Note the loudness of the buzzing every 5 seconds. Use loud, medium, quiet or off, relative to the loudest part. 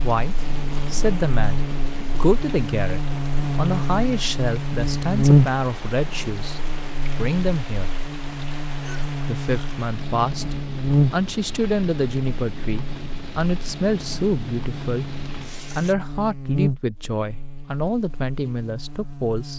medium, loud, loud, medium.